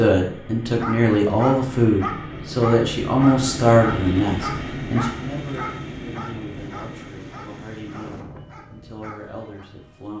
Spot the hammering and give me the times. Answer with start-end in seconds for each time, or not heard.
not heard.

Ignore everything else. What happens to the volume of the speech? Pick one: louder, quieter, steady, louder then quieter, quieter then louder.
quieter.